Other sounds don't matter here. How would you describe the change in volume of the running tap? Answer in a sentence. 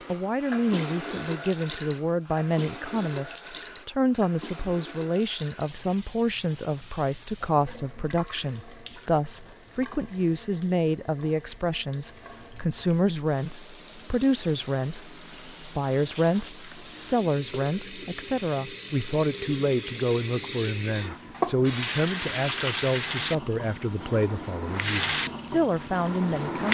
The volume of the running tap goes down, then up.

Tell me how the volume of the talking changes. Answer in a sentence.
The volume of the talking stays about the same.